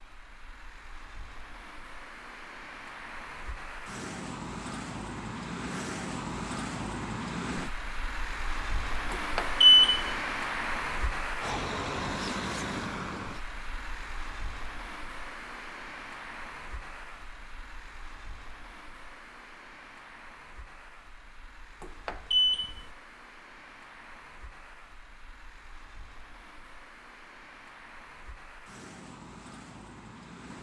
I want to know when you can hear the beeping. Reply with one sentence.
The beeping can be heard from 9.1 to 10.1 s and from 21.8 to 22.8 s.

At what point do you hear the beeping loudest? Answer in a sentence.
The loudest moment of the beeping is at 10 seconds.